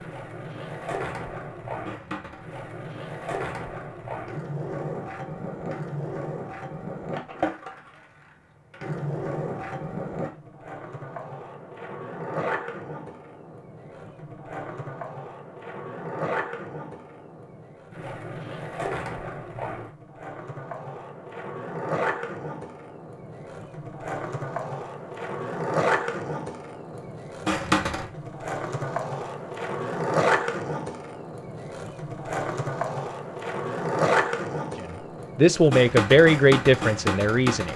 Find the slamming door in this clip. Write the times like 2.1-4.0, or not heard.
not heard.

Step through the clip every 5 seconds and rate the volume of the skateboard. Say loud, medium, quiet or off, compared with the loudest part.
medium, medium, medium, medium, medium, loud, loud, loud.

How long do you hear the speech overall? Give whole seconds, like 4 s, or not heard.
3 s.